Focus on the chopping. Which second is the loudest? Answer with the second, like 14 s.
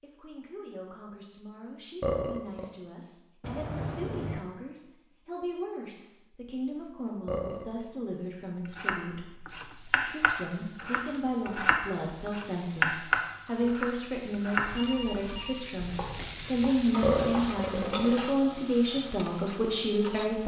13 s.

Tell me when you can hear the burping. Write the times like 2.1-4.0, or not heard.
2.0-2.6, 7.2-7.7, 17.0-18.1.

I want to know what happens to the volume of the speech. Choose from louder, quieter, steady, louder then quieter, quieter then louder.
louder.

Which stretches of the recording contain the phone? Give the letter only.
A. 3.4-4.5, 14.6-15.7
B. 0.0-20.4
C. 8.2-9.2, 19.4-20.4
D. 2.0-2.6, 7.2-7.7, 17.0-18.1
A.